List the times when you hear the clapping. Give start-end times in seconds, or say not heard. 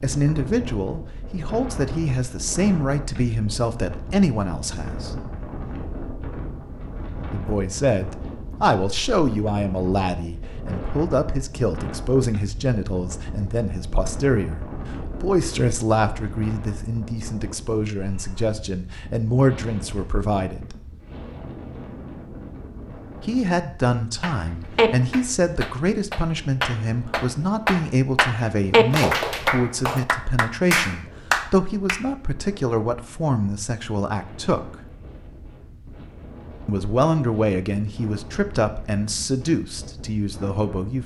24.2-32.0.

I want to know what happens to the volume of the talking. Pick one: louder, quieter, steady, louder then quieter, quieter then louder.
steady.